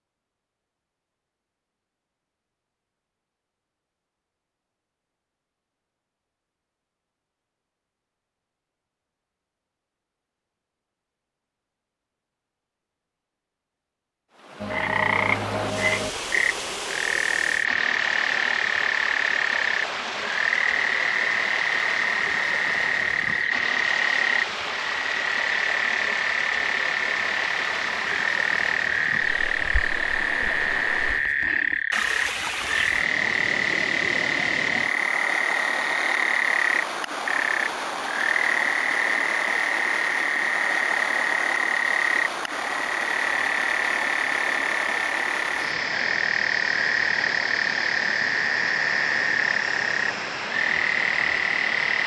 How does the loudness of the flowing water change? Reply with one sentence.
The volume of the flowing water stays about the same.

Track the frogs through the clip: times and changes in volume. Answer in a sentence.
You can hear the frogs from 14.6 to 52.0 s, at a steady volume.